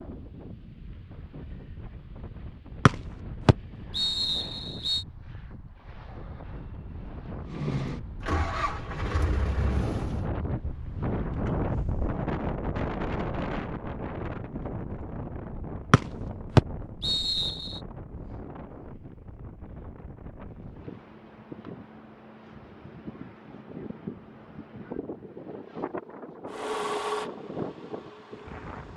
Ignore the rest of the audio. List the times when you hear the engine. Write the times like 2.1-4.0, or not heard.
7.5-10.3, 26.4-28.9.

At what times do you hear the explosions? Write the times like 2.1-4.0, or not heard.
not heard.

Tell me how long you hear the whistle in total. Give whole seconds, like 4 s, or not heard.
4 s.